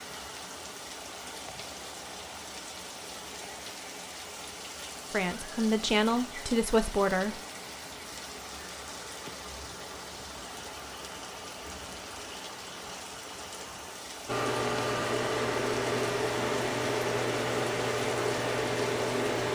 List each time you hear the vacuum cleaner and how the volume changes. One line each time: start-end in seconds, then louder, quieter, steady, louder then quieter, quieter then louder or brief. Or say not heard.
14.2-19.4 steady.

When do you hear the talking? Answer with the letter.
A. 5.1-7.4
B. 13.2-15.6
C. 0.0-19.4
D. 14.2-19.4
A.